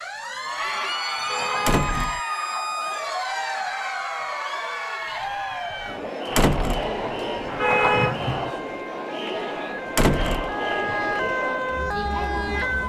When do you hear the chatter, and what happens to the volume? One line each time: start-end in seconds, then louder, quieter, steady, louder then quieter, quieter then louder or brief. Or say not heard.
0.1-12.8 steady.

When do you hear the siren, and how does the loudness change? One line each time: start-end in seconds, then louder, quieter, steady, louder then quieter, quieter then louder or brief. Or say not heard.
0.0-12.8 quieter then louder.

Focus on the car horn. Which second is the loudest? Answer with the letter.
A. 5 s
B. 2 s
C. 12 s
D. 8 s
D.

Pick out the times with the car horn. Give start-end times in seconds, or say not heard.
1.1-2.2, 7.5-8.5.